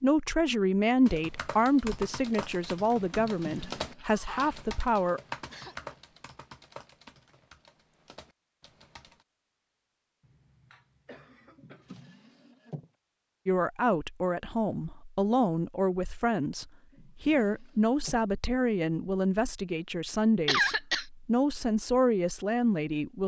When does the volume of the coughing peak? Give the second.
21 s.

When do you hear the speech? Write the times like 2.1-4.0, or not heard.
0.0-5.2, 13.4-23.2.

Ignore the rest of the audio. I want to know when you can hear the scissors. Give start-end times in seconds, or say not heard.
not heard.